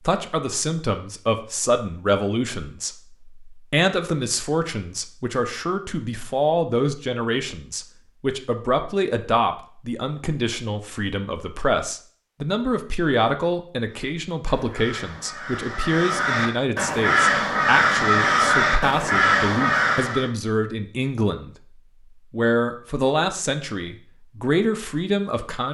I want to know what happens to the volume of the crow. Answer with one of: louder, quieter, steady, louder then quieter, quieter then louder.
louder.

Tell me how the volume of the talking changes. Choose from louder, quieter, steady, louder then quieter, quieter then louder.
steady.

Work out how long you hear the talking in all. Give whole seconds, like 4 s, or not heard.
25 s.